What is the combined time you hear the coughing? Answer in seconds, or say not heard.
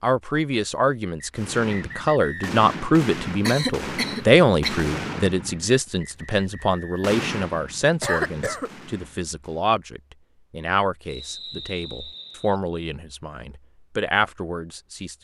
2 s.